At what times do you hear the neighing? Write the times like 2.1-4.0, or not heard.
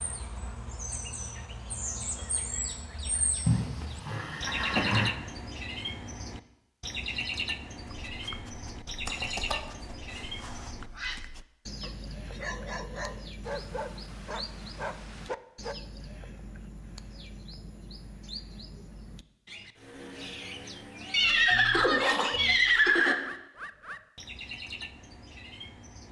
3.5-5.1, 9.1-9.6, 21.1-23.1.